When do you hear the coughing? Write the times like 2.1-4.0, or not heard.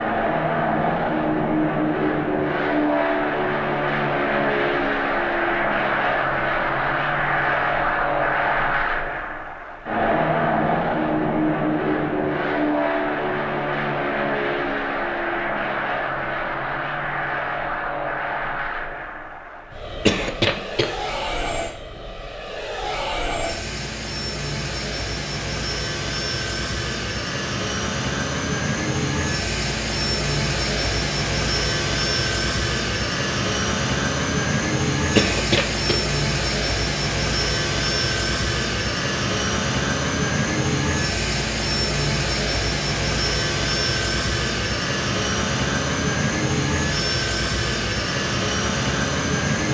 20.1-20.9, 35.1-36.0.